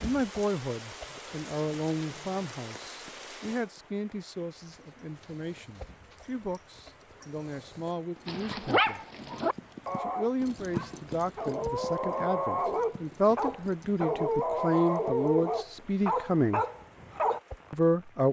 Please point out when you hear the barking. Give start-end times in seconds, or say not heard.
8.2-17.4.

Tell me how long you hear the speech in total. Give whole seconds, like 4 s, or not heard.
16 s.